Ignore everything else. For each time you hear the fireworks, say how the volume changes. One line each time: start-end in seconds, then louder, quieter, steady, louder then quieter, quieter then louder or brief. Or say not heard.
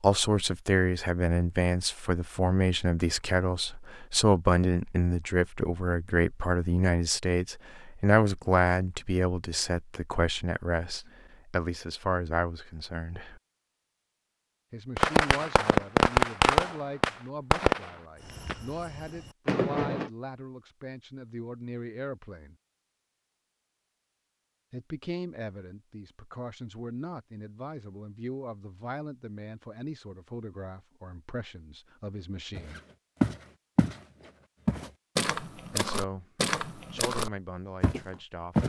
14.9-20.1 quieter then louder.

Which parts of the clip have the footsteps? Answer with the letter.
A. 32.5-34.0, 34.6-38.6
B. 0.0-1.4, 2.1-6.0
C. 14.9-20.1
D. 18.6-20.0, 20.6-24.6
A.